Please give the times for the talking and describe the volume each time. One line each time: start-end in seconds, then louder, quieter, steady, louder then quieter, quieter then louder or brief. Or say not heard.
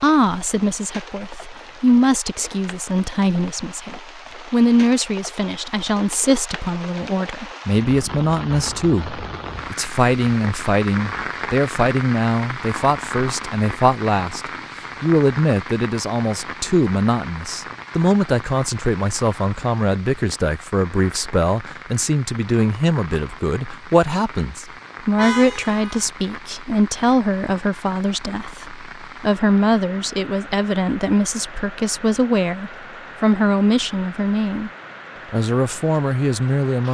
0.0-34.7 steady
35.3-36.8 brief.